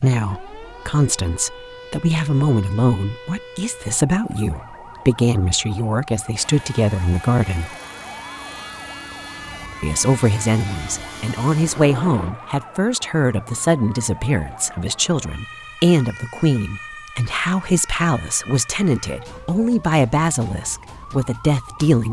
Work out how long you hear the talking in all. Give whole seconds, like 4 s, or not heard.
20 s.